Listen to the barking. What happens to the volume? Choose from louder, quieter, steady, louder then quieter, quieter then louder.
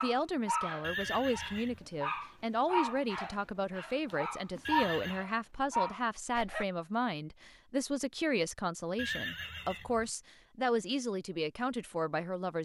steady.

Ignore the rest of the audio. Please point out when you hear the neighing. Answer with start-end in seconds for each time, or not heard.
0.8-1.9, 4.7-5.2, 8.9-10.1.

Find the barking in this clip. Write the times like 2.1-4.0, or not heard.
0.0-6.7.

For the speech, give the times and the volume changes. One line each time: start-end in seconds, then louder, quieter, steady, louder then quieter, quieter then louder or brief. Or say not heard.
0.0-12.5 steady.